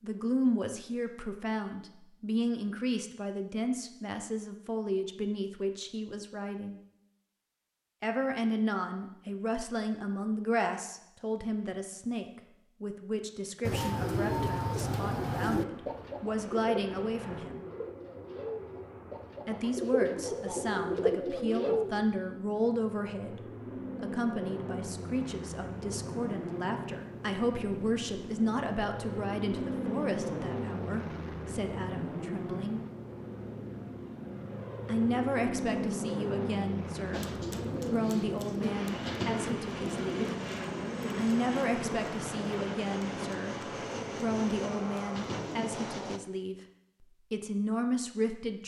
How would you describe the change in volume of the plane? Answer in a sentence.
The loudness of the plane goes up.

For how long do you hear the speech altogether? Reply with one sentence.
The speech can be heard for 43 seconds in total.